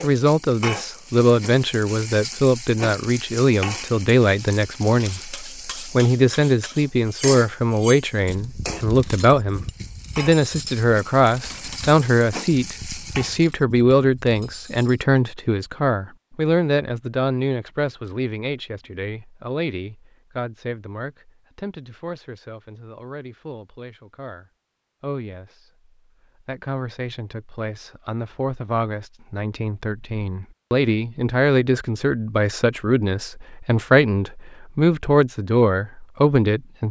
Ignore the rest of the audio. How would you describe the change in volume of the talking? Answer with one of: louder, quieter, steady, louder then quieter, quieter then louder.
quieter then louder.